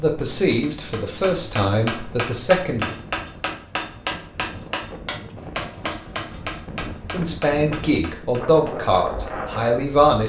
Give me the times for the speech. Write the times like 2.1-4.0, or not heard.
0.0-3.0, 7.1-10.2.